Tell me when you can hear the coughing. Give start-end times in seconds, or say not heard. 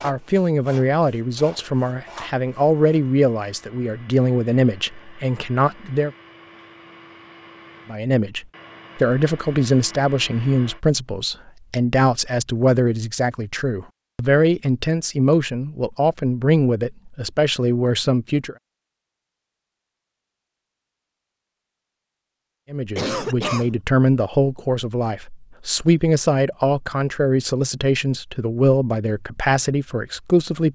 22.9-23.7.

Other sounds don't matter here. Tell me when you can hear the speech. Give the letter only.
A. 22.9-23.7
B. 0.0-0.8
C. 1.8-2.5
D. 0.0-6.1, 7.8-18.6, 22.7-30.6
D.